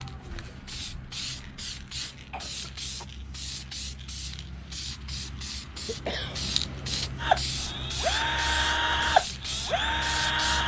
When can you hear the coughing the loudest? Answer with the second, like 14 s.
6 s.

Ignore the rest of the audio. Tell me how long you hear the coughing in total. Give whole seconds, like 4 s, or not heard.
2 s.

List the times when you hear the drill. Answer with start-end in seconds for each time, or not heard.
7.2-10.6.